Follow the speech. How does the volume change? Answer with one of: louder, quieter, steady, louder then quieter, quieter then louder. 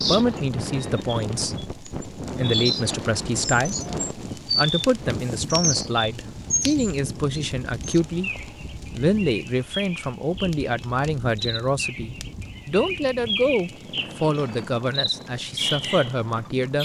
steady.